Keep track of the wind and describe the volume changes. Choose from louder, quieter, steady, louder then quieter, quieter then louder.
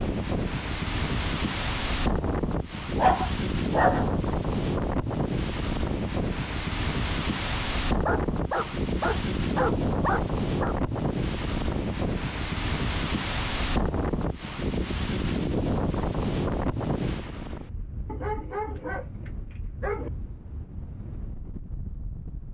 quieter.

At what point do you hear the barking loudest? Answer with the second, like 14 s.
3 s.